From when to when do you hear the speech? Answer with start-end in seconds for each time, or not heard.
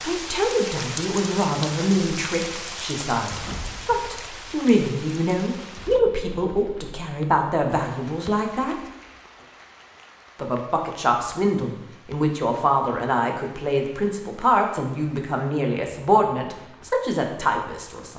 0.0-8.8, 10.3-18.1.